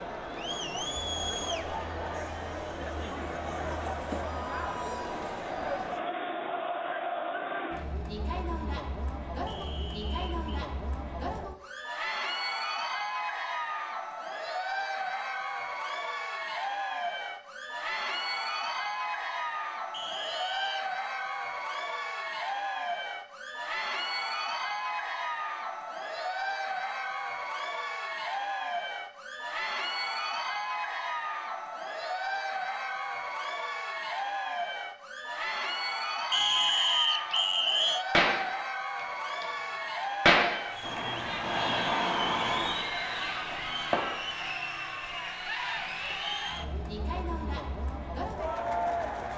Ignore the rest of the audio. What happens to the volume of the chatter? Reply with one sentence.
The volume of the chatter stays about the same.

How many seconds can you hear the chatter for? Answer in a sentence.
You can hear the chatter for 49 seconds altogether.